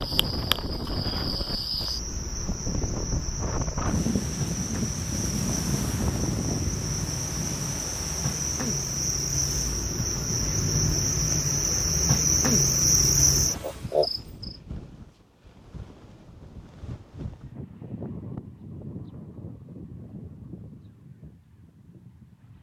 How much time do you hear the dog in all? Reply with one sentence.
The dog can't be heard in this clip.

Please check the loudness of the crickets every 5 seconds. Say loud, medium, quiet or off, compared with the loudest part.
medium, medium, loud, off, off.